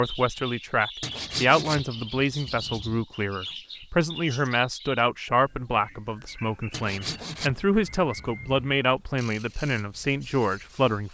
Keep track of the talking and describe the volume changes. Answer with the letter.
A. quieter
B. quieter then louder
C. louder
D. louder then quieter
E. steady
E.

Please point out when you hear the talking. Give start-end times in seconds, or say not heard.
0.0-11.0.